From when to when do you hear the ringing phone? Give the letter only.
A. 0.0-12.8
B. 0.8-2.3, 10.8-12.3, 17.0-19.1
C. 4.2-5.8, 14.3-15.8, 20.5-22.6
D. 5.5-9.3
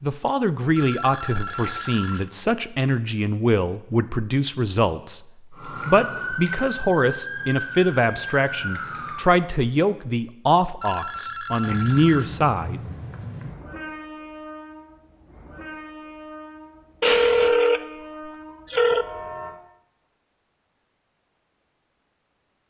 B.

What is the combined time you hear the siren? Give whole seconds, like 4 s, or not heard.
4 s.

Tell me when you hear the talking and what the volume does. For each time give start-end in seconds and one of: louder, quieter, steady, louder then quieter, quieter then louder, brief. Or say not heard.
0.0-12.8 steady.